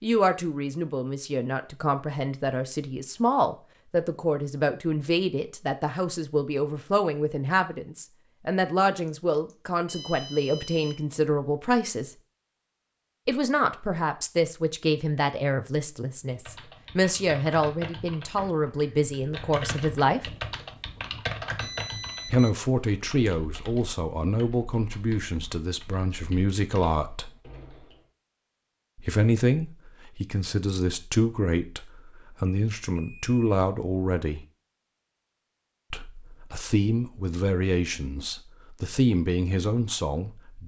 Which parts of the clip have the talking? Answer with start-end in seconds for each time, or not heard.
0.0-12.2, 13.2-20.3, 22.2-27.3, 28.9-34.5, 35.9-40.6.